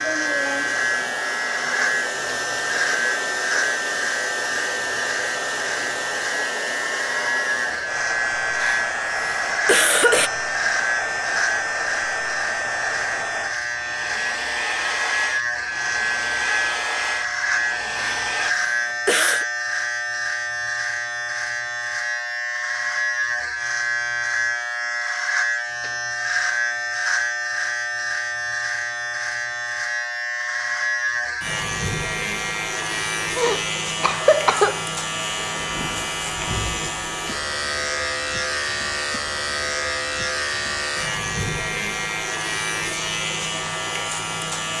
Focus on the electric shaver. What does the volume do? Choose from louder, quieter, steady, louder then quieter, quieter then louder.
steady.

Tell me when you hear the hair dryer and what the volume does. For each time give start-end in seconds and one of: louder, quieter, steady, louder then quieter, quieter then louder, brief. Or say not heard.
0.0-18.6 steady.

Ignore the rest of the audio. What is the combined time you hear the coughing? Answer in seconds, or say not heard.
5 s.